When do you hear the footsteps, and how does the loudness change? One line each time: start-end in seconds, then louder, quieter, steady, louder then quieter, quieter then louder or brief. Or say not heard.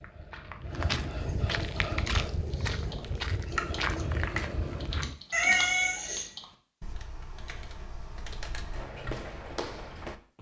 0.0-5.2 steady
8.7-10.3 brief.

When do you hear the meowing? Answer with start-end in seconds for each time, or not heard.
5.3-6.2.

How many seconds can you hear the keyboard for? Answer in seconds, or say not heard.
7 s.